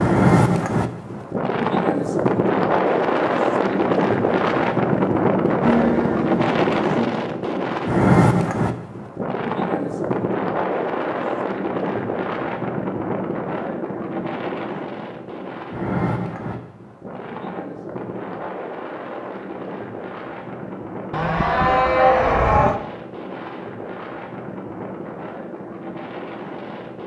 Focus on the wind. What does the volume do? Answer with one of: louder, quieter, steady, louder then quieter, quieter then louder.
quieter.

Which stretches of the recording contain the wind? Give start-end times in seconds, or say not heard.
0.0-27.0.